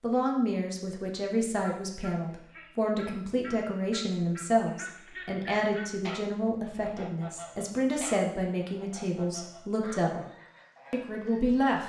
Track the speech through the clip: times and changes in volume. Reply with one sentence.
You can hear the speech from 0.0 to 10.2 s, at a steady volume; and briefly from 10.9 to 11.8 s.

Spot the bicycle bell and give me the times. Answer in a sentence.
The bicycle bell can't be heard in this clip.